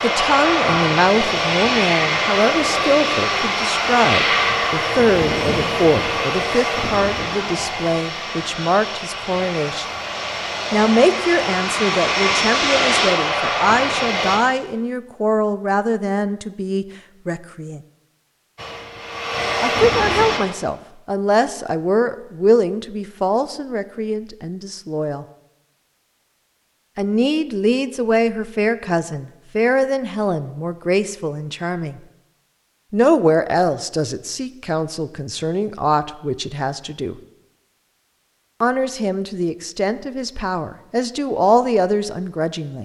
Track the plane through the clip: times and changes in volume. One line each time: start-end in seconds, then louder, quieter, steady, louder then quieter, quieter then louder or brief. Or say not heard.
0.0-14.4 quieter then louder
18.6-20.4 brief.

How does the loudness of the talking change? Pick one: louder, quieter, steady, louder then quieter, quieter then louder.
steady.